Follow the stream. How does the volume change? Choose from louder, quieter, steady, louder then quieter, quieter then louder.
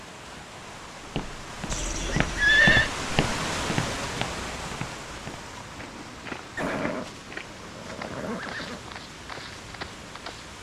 louder then quieter.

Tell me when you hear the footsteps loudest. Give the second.
3 s.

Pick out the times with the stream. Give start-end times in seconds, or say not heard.
0.0-10.5.